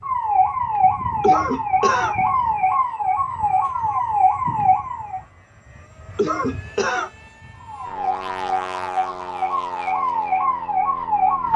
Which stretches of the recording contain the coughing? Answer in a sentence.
You can hear the coughing from 1.2 to 2.1 s and from 6.2 to 7.1 s.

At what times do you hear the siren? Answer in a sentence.
The siren can be heard from 0.0 to 5.2 s and from 7.6 to 11.5 s.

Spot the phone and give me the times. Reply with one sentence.
You can't hear the phone here.